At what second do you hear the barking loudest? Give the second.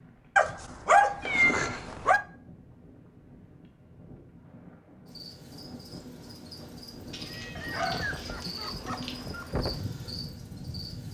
1 s.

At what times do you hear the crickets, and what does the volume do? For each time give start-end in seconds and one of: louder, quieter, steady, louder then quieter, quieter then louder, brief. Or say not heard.
5.0-11.0 louder.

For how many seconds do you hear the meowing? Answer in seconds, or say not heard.
3 s.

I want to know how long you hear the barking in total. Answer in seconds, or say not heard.
4 s.